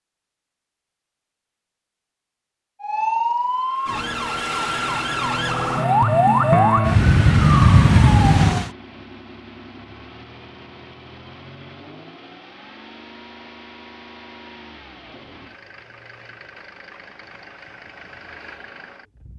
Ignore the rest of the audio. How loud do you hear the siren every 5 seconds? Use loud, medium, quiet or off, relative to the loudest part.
medium, loud, off, off.